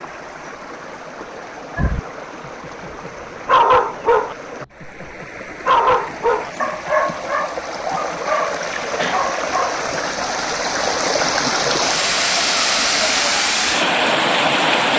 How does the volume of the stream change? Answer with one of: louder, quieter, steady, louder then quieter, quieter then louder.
louder.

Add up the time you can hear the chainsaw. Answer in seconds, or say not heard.
not heard.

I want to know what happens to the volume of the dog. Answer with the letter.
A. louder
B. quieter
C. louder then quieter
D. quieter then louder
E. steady
B.